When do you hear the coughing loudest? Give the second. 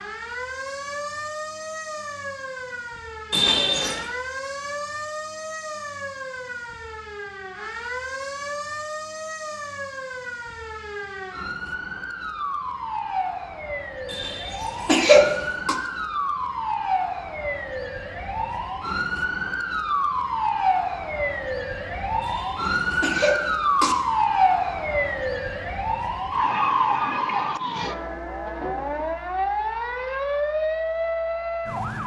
15 s.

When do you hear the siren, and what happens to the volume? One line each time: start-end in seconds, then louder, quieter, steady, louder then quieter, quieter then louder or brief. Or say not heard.
0.0-32.0 louder.